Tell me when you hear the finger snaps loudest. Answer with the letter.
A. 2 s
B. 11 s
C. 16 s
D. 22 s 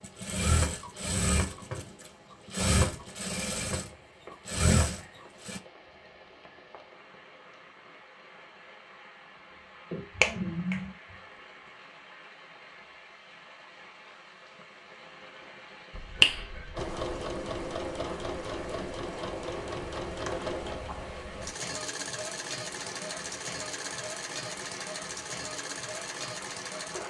C.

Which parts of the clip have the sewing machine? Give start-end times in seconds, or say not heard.
0.0-5.6, 16.8-27.0.